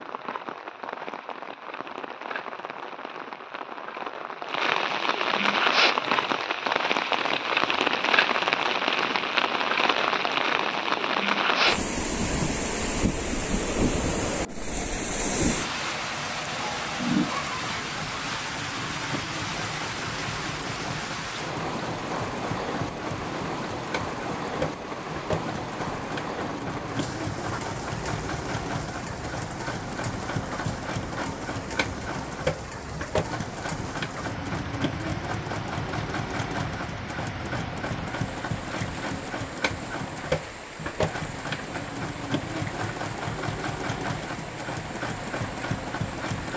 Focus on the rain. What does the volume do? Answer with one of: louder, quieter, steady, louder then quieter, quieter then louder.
quieter.